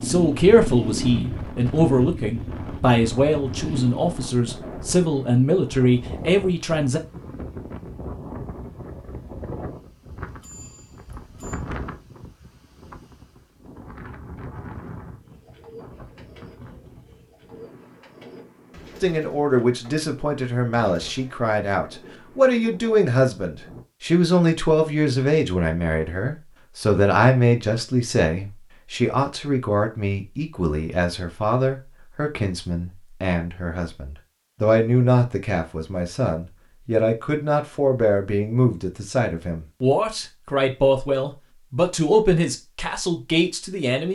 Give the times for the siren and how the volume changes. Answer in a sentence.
The siren can't be heard in this clip.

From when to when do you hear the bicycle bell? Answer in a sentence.
You can hear the bicycle bell from 10.4 to 11.6 s.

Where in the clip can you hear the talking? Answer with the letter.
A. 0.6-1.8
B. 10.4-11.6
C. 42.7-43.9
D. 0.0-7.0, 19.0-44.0
D.